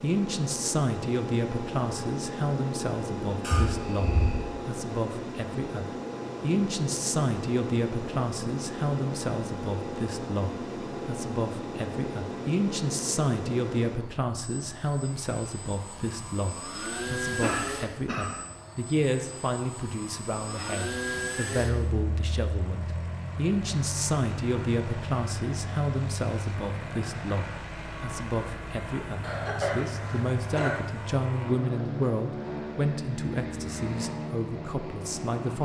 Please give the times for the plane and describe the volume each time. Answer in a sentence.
You can hear the plane from 0.0 to 35.6 s, at a steady volume.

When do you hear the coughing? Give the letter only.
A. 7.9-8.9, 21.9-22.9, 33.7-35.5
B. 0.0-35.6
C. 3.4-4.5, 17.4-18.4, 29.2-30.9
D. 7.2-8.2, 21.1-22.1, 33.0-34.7
C.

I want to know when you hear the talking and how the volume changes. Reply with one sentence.
You can hear the talking from 0.0 to 35.6 s, at a steady volume.